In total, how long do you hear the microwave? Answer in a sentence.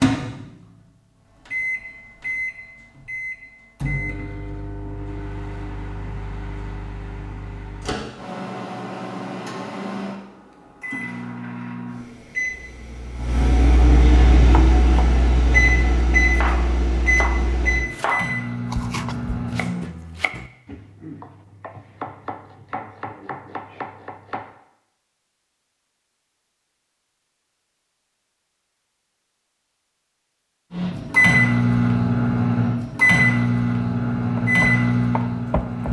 You can hear the microwave for 25 seconds altogether.